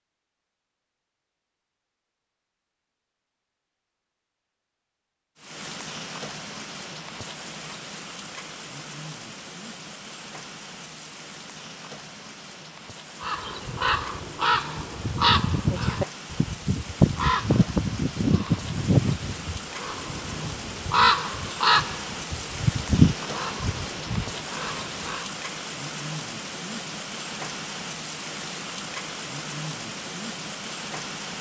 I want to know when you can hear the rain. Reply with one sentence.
You can hear the rain from 5.3 to 31.3 s.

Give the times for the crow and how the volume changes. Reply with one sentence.
You can hear the crow from 13.2 to 25.2 s, at a steady volume.